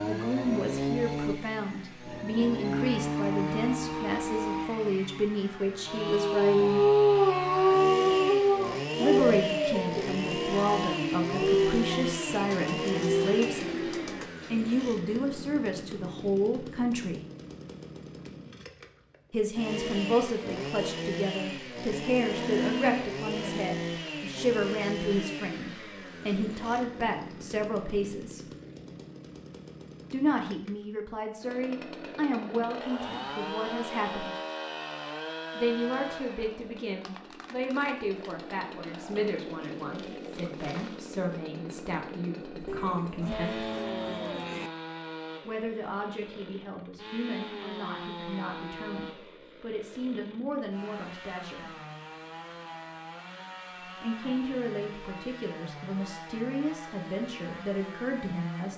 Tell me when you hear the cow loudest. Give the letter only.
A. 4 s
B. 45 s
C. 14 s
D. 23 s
D.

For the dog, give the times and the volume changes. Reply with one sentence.
You can hear the dog from 6.0 to 13.4 s, getting quieter.